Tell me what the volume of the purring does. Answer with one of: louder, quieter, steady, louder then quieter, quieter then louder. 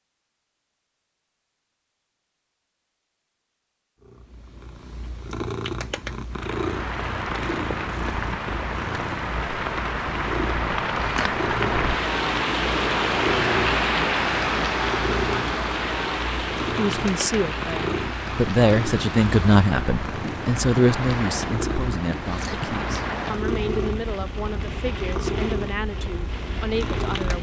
steady.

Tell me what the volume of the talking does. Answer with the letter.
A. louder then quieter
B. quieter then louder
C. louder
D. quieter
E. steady
D.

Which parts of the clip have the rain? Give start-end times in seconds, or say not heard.
6.3-27.3.